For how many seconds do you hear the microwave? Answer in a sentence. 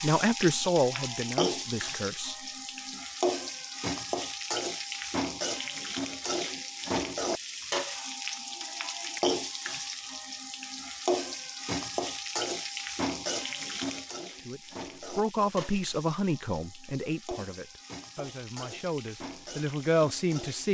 You can't hear the microwave here.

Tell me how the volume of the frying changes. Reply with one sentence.
The volume of the frying goes down.